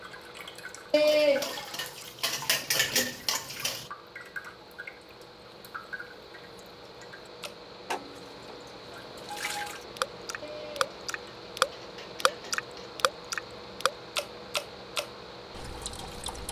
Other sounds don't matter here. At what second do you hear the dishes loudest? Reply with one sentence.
The loudest moment of the dishes is at 1 second.